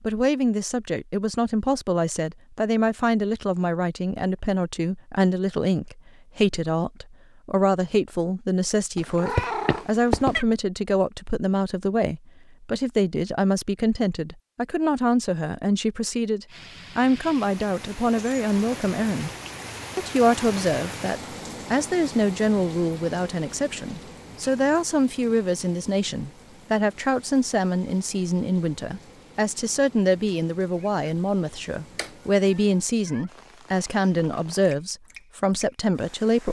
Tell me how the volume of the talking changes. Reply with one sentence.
The volume of the talking stays about the same.